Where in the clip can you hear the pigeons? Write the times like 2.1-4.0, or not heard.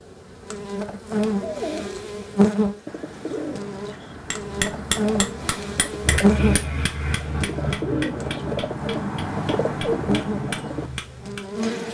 1.4-10.9.